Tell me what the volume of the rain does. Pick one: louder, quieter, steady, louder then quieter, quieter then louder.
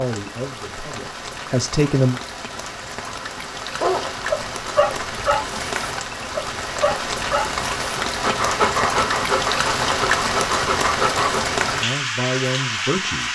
louder.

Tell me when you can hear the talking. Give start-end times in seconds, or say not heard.
0.0-2.2, 11.6-13.3.